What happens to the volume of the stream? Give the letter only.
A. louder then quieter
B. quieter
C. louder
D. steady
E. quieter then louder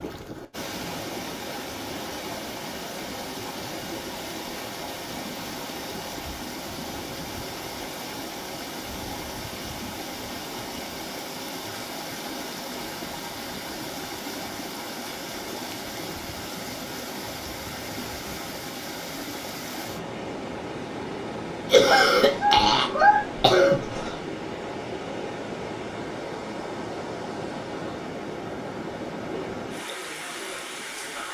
D.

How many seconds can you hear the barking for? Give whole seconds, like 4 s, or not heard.
not heard.